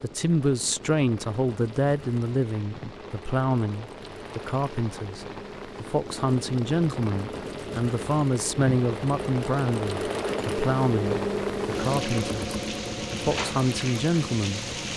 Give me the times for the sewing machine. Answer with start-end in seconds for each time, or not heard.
0.0-14.9.